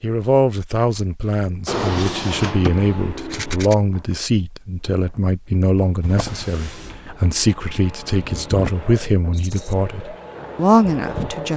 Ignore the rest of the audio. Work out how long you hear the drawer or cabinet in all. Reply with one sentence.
You can hear the drawer or cabinet for 2 seconds altogether.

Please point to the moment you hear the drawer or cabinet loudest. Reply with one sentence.
The loudest moment of the drawer or cabinet is at 2 seconds.